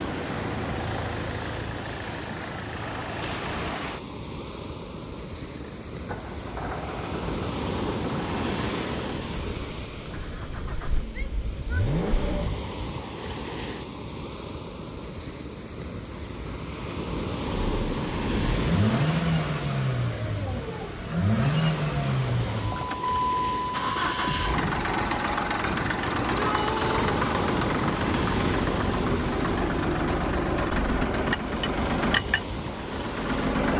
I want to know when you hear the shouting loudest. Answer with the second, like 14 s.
27 s.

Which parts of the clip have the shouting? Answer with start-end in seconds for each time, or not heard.
11.1-11.8, 26.3-27.1.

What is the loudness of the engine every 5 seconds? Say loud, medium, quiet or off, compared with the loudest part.
medium, quiet, medium, loud, loud, loud, loud.